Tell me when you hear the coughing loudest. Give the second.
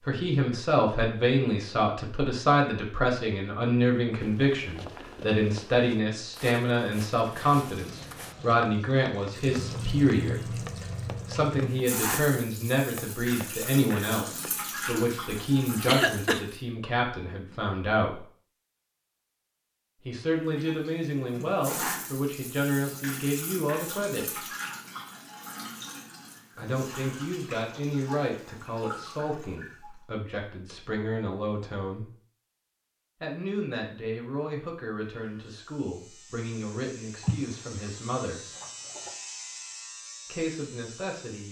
16 s.